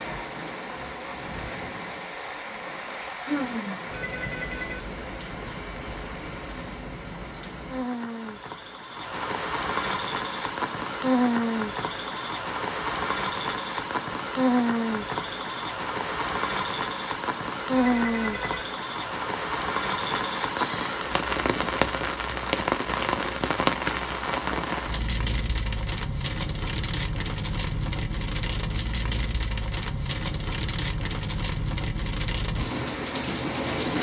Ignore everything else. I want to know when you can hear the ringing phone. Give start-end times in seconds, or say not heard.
3.9-4.8, 17.7-18.6.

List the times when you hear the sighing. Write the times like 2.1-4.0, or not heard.
3.1-3.9, 20.6-21.1.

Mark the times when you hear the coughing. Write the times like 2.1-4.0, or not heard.
not heard.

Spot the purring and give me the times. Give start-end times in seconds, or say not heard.
not heard.